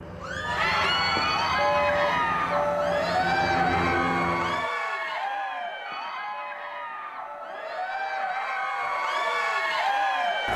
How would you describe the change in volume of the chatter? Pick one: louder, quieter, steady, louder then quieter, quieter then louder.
quieter then louder.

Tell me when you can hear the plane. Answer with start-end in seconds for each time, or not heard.
0.0-4.7.